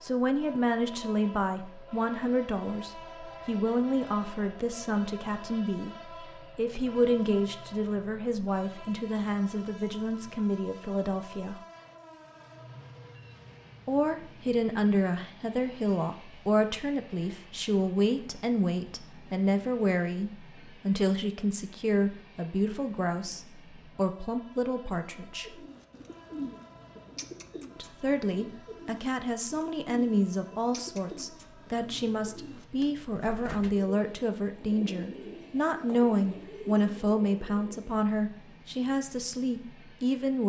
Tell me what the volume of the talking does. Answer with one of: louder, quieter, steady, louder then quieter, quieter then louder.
steady.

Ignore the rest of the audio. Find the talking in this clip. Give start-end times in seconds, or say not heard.
0.0-11.6, 13.8-25.4, 27.8-40.4.